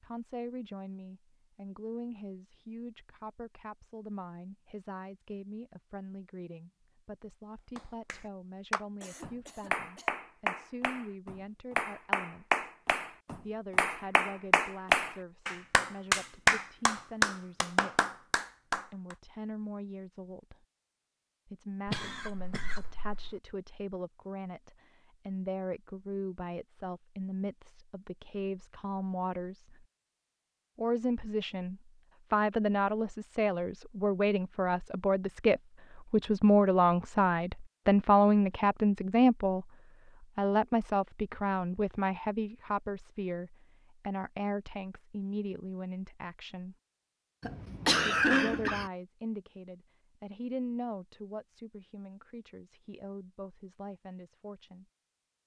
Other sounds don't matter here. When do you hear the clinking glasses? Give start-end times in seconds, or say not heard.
not heard.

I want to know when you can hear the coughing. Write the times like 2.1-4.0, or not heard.
9.0-10.2, 21.9-23.4, 47.4-48.9.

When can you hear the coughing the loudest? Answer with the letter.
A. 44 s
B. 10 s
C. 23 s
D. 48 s
D.